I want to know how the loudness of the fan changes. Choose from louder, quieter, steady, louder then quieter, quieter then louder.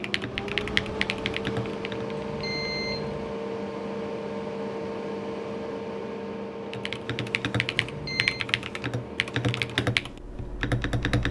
quieter.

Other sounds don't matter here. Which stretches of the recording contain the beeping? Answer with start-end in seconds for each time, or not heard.
2.1-3.4, 7.8-8.4.